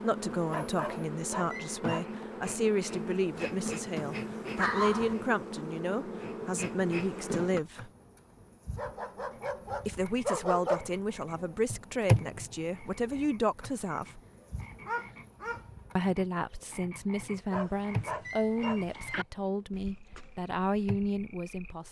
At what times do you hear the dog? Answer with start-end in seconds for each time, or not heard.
0.5-2.0, 4.5-5.2, 8.8-10.9, 14.8-15.6, 17.5-19.2.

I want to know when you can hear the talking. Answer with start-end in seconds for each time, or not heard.
0.0-7.9, 9.8-14.2, 15.9-21.8.